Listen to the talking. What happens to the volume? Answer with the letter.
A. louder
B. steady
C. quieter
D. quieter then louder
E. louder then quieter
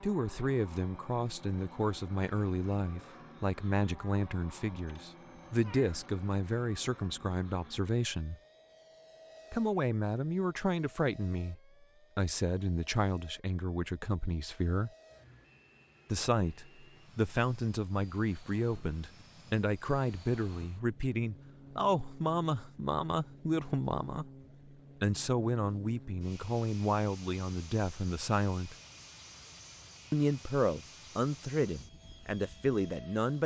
B.